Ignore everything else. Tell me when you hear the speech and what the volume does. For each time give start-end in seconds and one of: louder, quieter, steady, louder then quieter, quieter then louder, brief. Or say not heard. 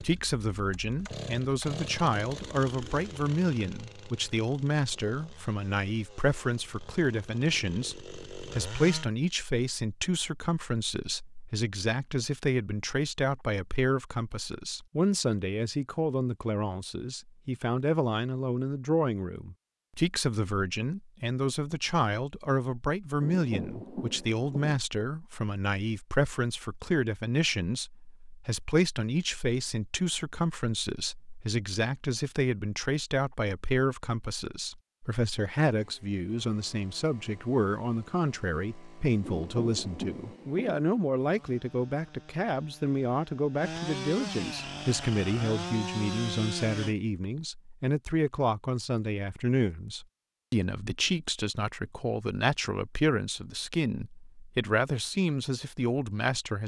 0.0-56.6 steady.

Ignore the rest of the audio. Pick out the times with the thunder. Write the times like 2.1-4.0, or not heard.
23.2-24.8, 39.2-40.9.